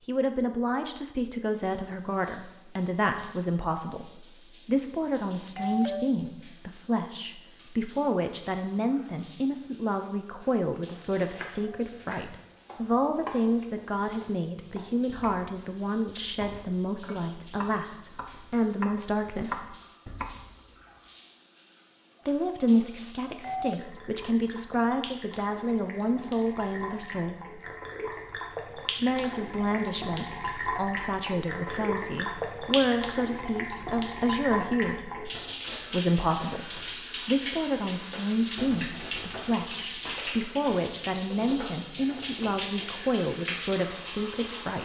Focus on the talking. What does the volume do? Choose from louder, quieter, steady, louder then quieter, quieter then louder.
steady.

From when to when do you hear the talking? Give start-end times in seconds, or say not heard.
0.1-19.8, 22.2-27.4, 29.0-35.1, 35.9-44.8.